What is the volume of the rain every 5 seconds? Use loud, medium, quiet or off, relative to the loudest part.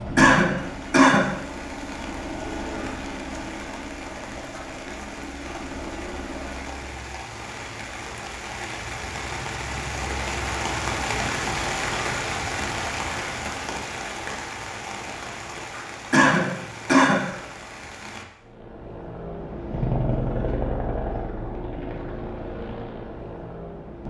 medium, medium, loud, medium, off.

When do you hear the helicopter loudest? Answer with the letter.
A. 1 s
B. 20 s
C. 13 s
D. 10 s
B.